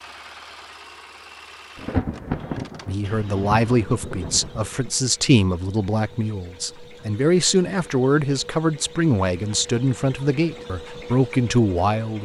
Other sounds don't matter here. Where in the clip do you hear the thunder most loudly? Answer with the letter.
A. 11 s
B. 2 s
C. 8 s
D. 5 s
B.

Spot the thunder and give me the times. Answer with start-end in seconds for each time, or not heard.
1.8-4.9.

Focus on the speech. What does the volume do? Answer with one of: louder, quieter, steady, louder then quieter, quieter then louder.
steady.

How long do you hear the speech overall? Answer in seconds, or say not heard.
9 s.